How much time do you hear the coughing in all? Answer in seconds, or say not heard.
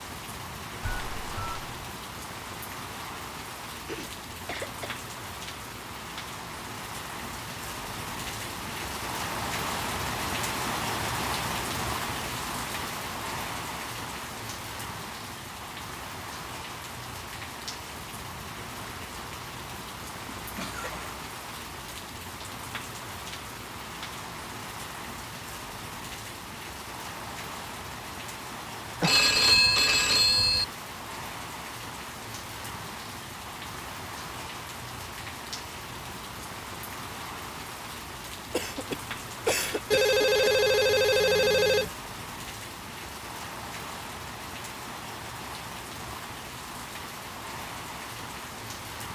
4 s.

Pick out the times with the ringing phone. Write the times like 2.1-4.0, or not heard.
0.8-1.8, 29.0-30.6, 39.9-41.9.